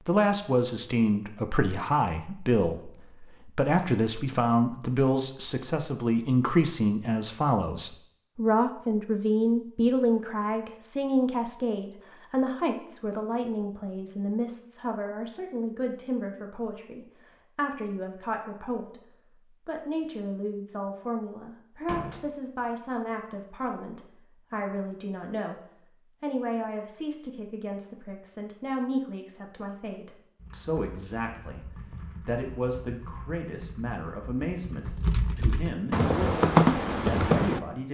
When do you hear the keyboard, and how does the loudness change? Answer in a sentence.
The keyboard can be heard from 30.4 to 37.6 s, getting louder.